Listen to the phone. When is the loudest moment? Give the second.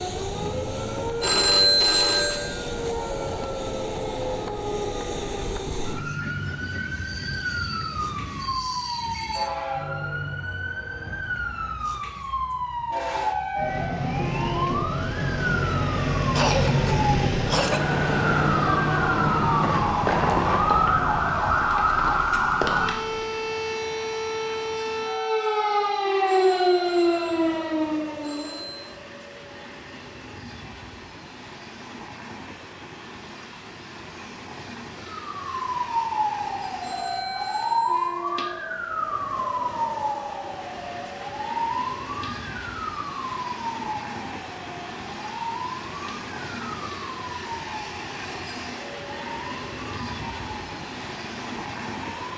2 s.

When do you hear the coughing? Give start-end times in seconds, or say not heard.
16.4-17.8.